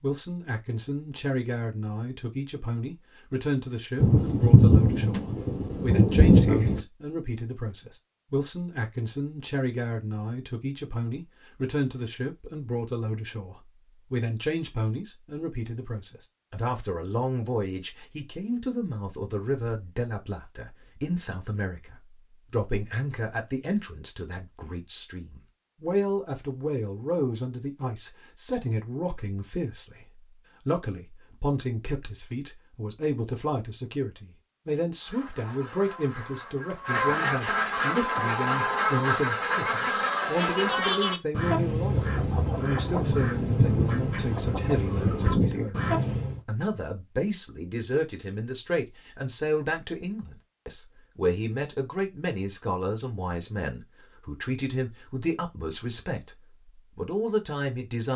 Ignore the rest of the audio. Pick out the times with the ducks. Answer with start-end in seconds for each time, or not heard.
35.0-46.4.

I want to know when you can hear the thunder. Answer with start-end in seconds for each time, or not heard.
4.0-6.8, 43.0-45.7.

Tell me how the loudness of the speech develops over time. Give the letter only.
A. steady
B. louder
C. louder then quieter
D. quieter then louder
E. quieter
A.